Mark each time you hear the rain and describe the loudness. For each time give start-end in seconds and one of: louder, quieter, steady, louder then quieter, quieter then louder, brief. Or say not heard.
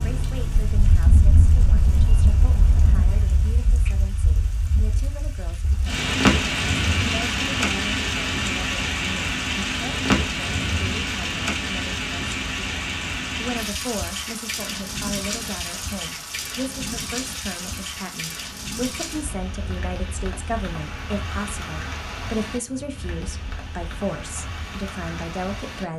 0.0-25.9 louder then quieter.